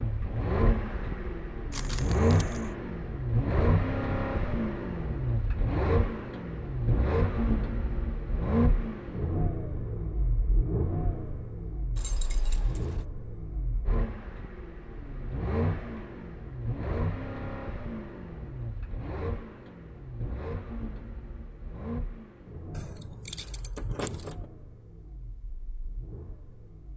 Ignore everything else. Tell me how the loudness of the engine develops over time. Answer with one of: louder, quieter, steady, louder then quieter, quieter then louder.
quieter.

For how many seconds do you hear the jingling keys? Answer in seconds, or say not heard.
4 s.